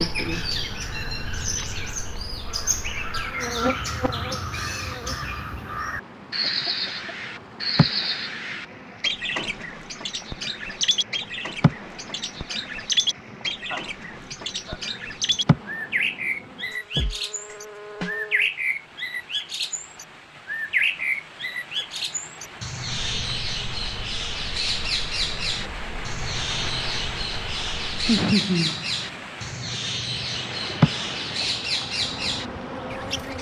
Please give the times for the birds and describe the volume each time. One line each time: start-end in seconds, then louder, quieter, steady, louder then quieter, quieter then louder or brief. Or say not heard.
0.0-33.3 steady.